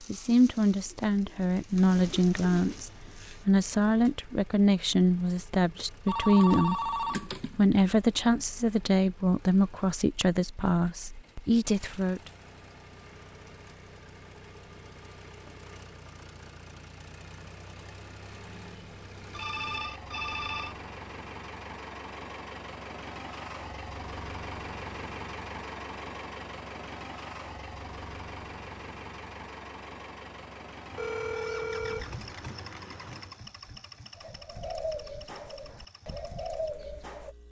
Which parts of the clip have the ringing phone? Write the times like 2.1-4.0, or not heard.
6.0-7.5, 19.4-20.8, 30.9-33.4.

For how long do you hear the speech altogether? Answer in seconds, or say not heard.
12 s.